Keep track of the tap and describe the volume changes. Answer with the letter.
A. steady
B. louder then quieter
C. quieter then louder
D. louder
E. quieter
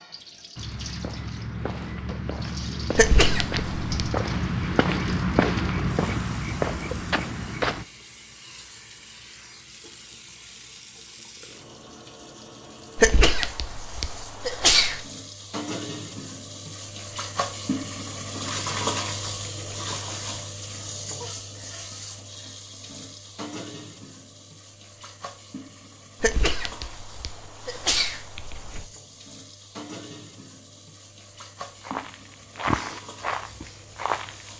B.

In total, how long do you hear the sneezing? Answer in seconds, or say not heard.
6 s.